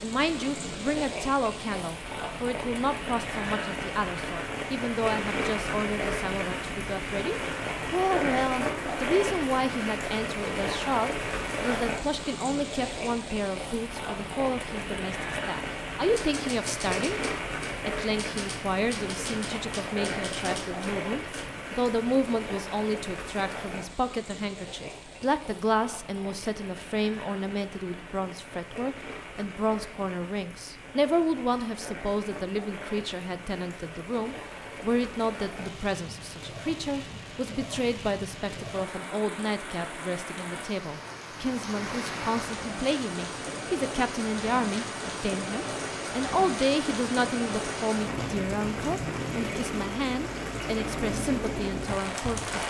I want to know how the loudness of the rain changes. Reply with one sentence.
The loudness of the rain goes down, then up.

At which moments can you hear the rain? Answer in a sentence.
You can hear the rain from 0.0 to 52.6 s.